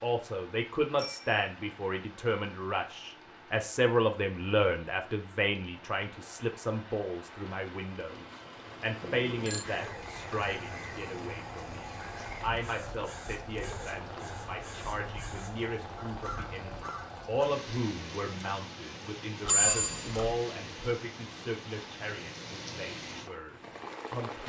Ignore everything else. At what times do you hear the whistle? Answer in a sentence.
The whistle can't be heard in this clip.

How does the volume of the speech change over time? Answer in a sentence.
The volume of the speech goes down.